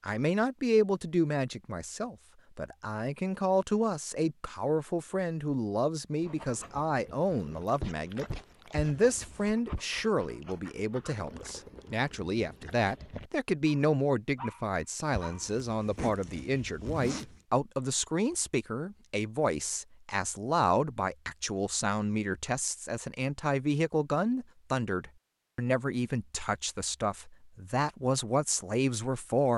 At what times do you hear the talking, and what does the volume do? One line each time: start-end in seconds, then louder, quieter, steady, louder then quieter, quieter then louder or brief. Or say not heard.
0.0-29.5 steady.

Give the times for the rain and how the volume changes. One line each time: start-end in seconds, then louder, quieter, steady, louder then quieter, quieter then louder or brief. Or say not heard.
not heard.